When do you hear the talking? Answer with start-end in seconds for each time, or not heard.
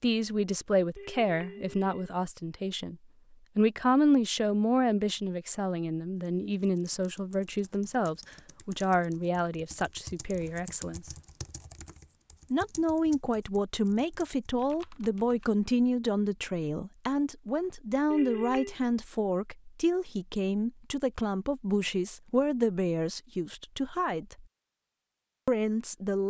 0.0-3.0, 3.5-11.1, 12.5-24.4, 25.4-26.2.